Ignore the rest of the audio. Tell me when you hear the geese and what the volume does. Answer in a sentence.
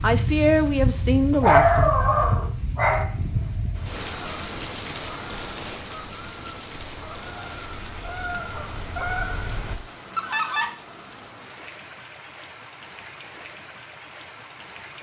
You can hear the geese from 3.3 to 10.7 s, getting louder.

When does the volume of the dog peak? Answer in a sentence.
The loudest moment of the dog is at 2 seconds.